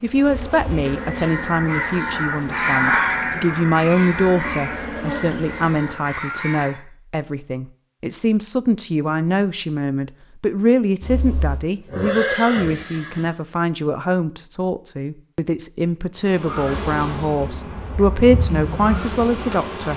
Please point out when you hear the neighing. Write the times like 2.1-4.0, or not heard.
11.0-13.3.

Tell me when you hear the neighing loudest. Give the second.
12 s.